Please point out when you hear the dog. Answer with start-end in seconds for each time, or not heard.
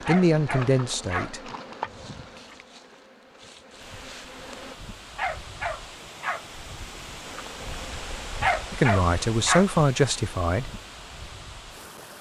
0.1-1.3, 5.2-6.5, 8.4-9.7.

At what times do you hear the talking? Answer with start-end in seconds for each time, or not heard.
0.1-1.4, 8.7-10.7.